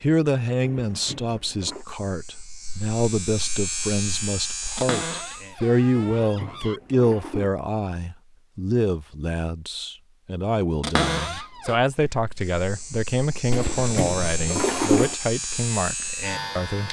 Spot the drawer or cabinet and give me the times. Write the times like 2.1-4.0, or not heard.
4.8-6.8, 10.8-11.8.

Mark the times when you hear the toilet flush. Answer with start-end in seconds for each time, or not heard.
0.6-1.9, 6.2-7.5, 13.5-15.2.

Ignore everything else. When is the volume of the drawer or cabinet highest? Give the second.
11 s.